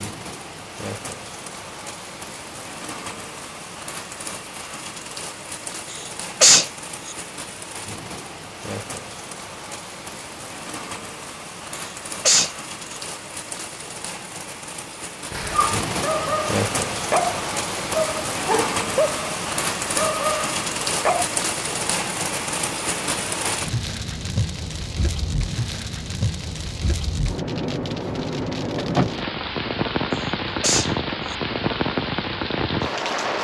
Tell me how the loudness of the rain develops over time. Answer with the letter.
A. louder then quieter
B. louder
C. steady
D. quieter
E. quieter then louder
B.